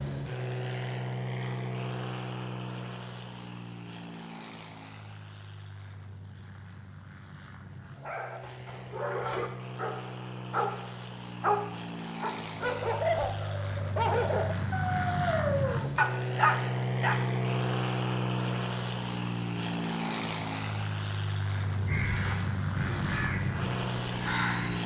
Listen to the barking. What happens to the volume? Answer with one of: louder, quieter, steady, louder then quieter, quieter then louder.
louder.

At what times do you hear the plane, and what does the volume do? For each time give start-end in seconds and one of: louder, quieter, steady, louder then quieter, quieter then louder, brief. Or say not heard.
0.0-24.8 quieter then louder.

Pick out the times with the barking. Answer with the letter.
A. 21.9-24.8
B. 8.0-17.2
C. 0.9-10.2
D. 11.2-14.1
B.